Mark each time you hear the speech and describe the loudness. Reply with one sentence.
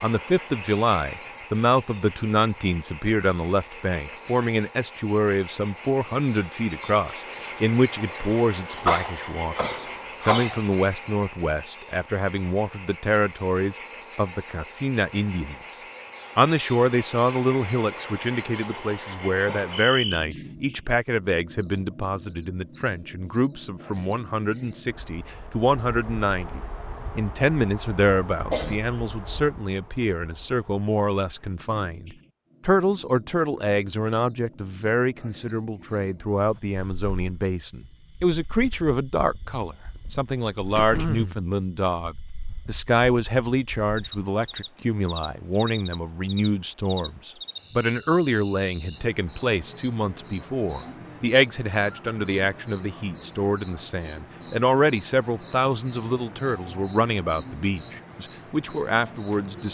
The speech can be heard from 0.0 to 59.6 s, at a steady volume.